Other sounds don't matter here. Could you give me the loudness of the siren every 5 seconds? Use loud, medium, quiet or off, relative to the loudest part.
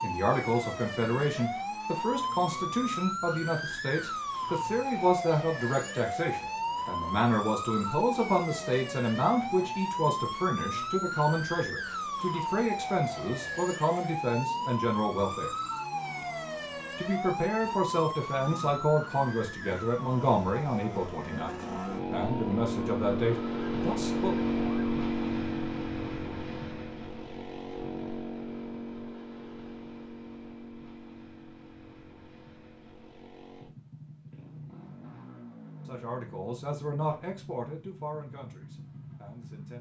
loud, loud, loud, loud, medium, off, off, off.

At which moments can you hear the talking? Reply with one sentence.
The talking can be heard from 0.0 to 15.5 s, from 16.9 to 24.4 s and from 35.9 to 39.7 s.